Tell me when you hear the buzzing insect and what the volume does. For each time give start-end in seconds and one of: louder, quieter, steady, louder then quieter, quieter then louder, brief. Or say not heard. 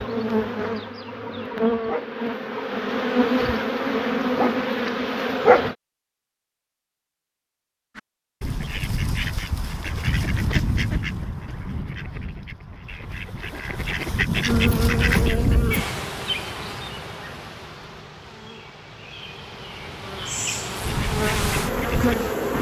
0.0-5.8 louder
14.4-22.5 quieter then louder.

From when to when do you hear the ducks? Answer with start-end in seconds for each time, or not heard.
8.0-15.8, 20.8-22.5.